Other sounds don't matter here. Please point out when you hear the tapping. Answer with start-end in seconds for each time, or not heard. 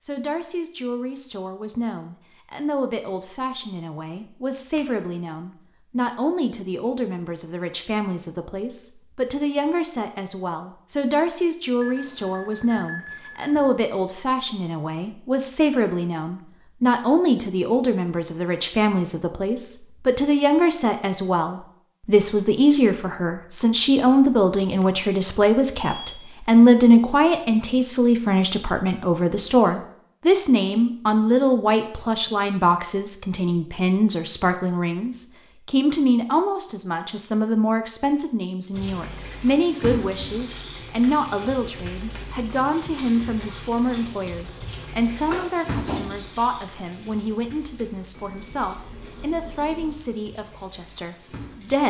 45.3-46.1.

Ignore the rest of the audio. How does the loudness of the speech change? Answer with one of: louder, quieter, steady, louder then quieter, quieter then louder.
louder then quieter.